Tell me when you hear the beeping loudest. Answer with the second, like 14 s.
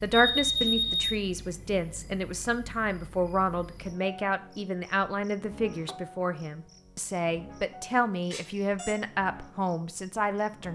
1 s.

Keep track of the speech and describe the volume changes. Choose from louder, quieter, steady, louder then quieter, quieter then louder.
steady.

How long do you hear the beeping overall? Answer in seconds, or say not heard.
2 s.